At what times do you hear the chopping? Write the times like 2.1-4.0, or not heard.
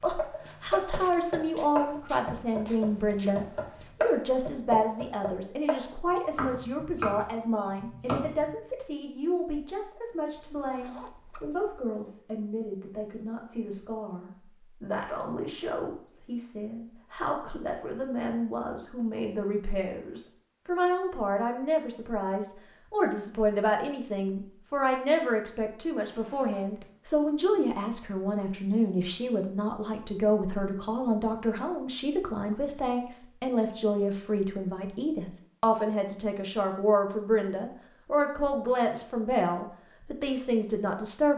0.0-8.6.